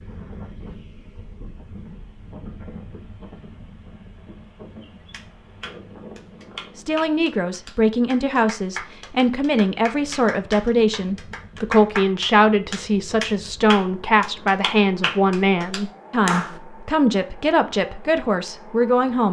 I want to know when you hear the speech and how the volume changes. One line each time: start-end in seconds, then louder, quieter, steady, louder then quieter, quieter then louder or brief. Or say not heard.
6.8-19.2 steady.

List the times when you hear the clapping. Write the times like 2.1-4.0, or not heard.
5.1-16.6.